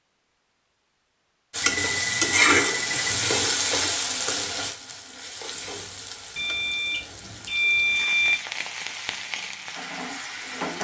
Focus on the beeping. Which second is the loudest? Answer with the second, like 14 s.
8 s.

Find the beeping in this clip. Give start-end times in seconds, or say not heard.
1.6-3.1, 6.3-8.3.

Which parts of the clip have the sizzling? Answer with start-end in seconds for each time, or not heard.
1.5-10.7.